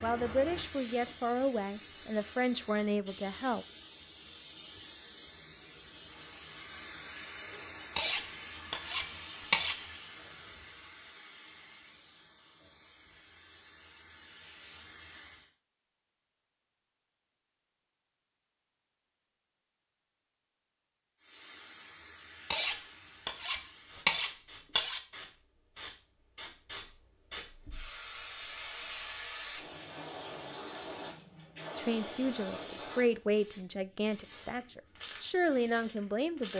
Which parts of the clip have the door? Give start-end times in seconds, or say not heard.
not heard.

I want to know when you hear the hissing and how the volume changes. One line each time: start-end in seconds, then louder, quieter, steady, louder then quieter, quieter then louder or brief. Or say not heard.
0.0-15.5 quieter
21.2-36.5 louder then quieter.